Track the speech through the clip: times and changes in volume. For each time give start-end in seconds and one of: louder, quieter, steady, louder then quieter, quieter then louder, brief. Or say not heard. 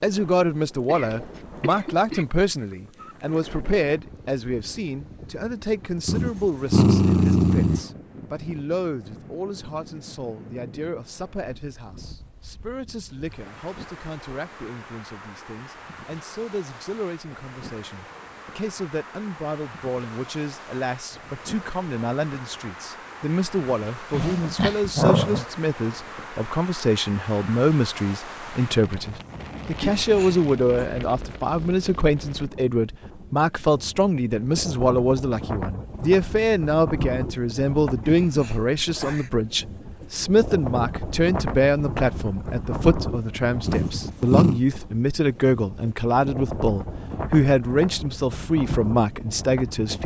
0.0-50.0 quieter then louder.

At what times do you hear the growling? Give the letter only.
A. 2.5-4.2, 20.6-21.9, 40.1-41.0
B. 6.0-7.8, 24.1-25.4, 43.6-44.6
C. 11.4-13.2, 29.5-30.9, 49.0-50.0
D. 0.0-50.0
B.